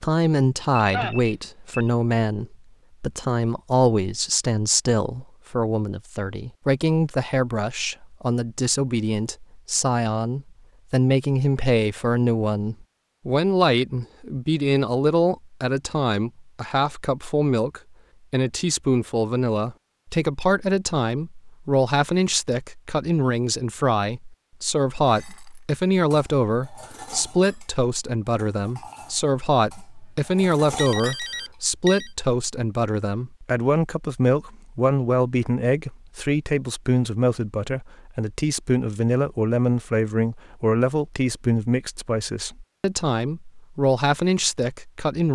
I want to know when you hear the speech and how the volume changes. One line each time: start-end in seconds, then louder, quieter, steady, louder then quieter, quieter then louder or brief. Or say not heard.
0.0-45.3 steady.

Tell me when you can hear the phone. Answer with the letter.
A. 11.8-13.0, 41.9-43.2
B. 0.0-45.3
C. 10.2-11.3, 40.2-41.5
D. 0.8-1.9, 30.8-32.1
D.